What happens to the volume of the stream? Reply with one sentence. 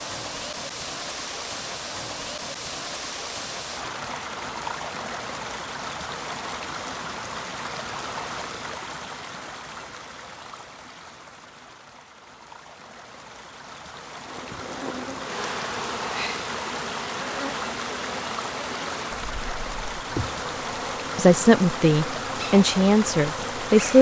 The volume of the stream goes down, then up.